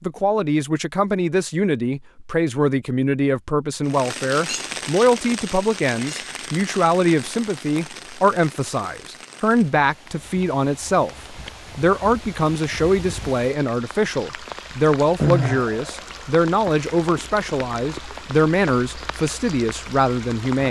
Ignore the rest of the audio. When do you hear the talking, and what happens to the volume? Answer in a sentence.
The talking can be heard from 0.0 to 20.6 s, at a steady volume.